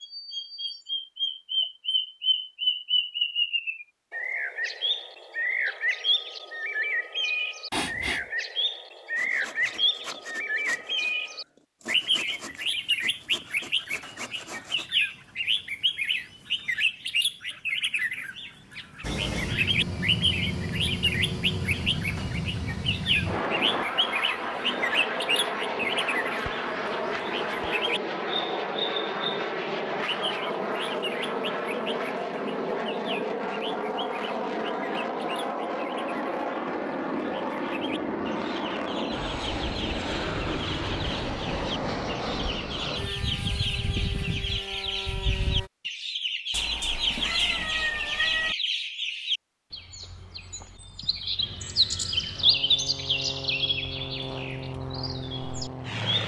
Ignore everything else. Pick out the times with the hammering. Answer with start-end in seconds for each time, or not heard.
not heard.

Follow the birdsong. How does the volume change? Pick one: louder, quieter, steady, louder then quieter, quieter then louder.
quieter then louder.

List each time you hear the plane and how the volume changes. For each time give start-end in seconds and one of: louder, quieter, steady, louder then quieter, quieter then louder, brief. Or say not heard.
19.0-45.7 steady
51.4-56.2 louder.